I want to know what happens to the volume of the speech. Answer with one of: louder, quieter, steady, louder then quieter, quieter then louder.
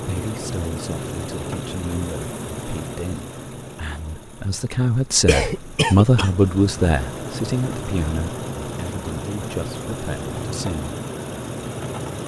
louder then quieter.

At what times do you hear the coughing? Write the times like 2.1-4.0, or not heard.
5.2-6.3.